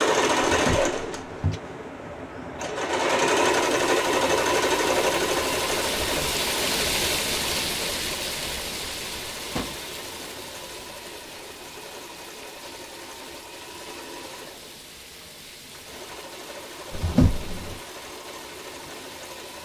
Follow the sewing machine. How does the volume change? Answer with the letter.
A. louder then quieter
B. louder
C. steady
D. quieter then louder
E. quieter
E.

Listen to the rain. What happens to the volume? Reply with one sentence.
The volume of the rain goes down.